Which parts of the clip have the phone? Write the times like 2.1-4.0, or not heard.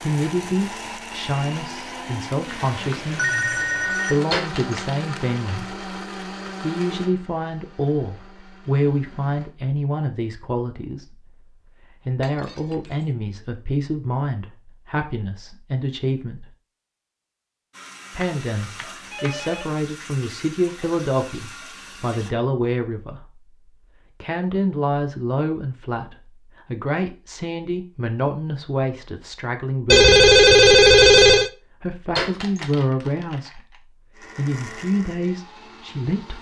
2.5-4.2, 18.2-19.7, 29.9-31.5.